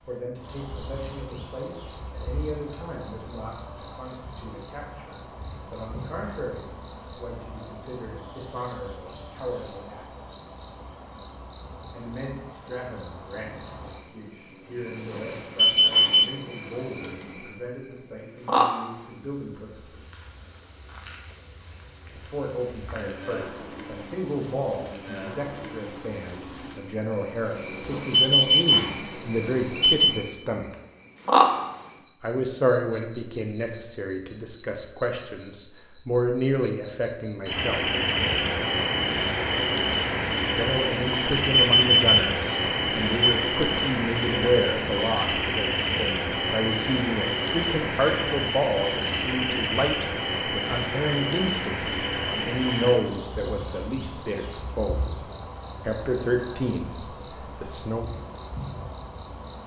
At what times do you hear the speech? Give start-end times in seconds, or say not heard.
0.0-10.1, 11.9-20.2, 22.1-30.8, 32.2-38.0, 40.5-55.2, 55.9-58.0.